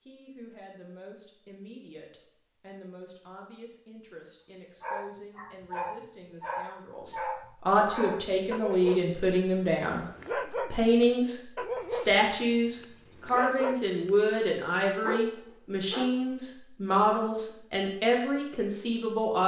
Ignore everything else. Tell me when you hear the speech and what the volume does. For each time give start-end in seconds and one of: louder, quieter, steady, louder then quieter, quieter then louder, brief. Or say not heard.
0.1-19.4 louder.